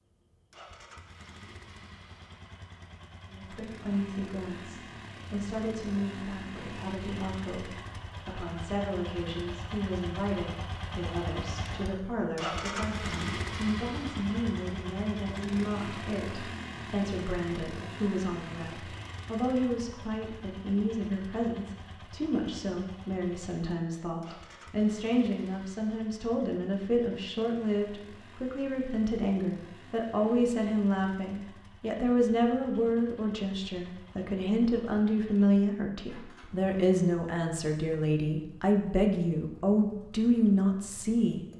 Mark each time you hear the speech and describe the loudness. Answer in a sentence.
You can hear the speech from 3.2 to 41.5 s, getting louder.